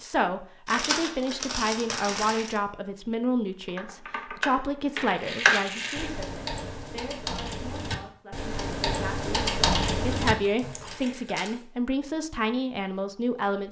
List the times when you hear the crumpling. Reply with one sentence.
The crumpling can be heard from 0.7 to 2.6 s, from 5.0 to 6.1 s and from 10.4 to 11.7 s.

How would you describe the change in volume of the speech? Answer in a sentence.
The loudness of the speech goes down, then up.